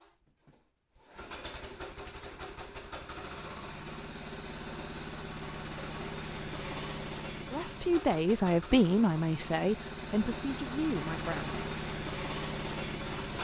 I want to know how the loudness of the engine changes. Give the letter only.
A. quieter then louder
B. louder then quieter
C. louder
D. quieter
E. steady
C.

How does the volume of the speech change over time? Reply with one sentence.
The loudness of the speech goes down.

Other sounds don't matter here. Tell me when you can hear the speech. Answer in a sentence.
The speech can be heard from 7.5 to 11.6 s.